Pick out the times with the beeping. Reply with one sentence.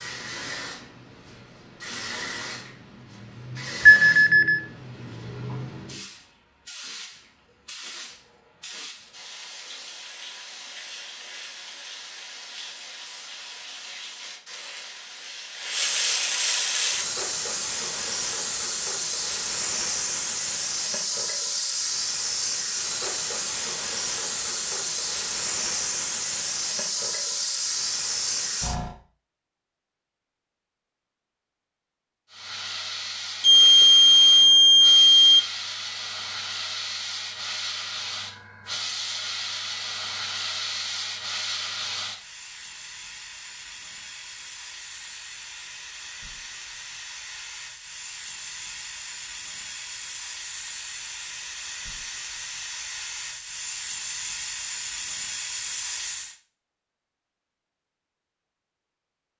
The beeping can be heard from 3.9 to 4.6 s and from 33.4 to 35.4 s.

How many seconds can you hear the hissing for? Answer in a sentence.
You can hear the hissing for 53 seconds altogether.